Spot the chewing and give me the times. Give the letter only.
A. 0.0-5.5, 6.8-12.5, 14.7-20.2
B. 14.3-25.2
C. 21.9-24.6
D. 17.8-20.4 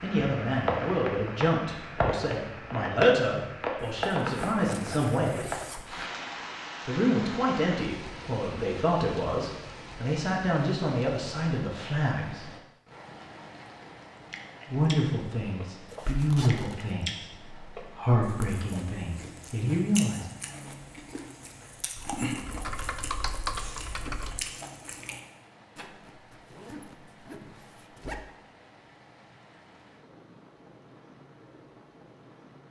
B.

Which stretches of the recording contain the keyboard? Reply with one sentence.
The keyboard can be heard from 21.9 to 24.6 s.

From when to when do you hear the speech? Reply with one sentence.
You can hear the speech from 0.0 to 5.5 s, from 6.8 to 12.5 s and from 14.7 to 20.2 s.